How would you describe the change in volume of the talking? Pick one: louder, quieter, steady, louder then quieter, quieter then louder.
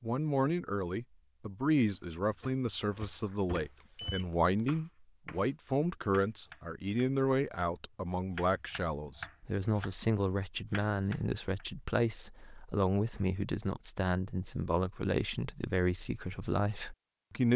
steady.